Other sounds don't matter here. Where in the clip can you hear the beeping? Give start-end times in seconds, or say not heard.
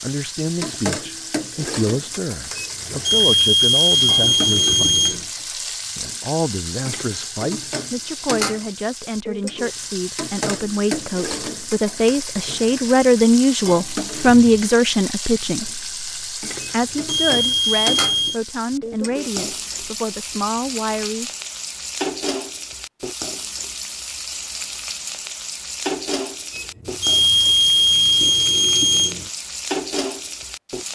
2.5-5.2, 16.6-18.4, 26.5-29.2.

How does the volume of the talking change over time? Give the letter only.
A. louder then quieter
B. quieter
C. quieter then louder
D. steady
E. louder
A.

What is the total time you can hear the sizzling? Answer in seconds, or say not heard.
31 s.